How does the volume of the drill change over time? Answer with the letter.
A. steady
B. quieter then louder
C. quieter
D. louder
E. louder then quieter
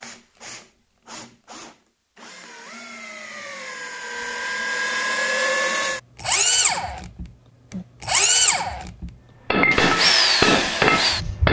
D.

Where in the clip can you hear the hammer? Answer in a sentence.
You can hear the hammer from 9.5 to 11.4 s.